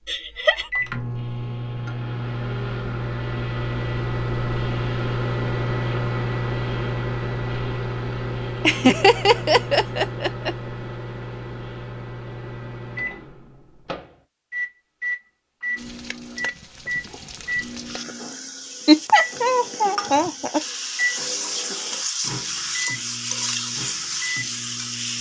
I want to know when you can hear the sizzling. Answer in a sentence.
The sizzling can be heard from 15.8 to 25.1 s.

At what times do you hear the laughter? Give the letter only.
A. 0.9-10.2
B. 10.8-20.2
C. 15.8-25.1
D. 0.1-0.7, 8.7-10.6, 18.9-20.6
D.